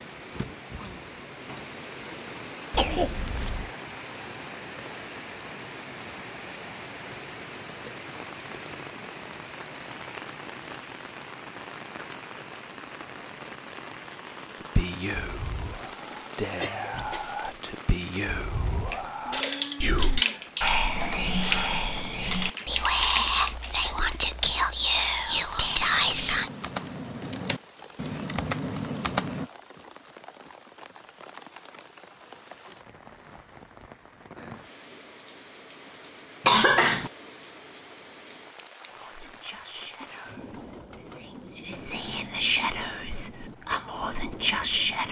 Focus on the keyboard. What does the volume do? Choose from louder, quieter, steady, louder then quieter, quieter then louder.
quieter then louder.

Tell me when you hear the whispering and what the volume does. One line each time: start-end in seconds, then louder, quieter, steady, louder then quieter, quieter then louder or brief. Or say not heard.
14.6-26.5 louder
38.9-45.0 quieter then louder.